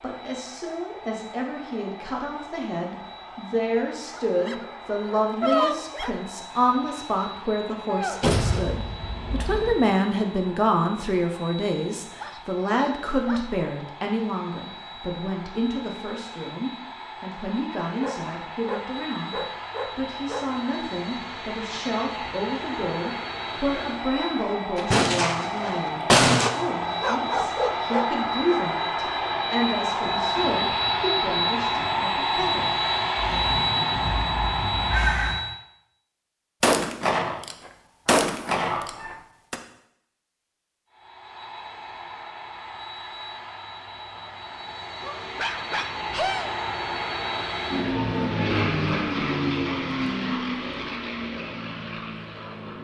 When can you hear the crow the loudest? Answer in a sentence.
The volume of the crow peaks at 35 seconds.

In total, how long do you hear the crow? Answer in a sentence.
The crow can be heard for 2 seconds in total.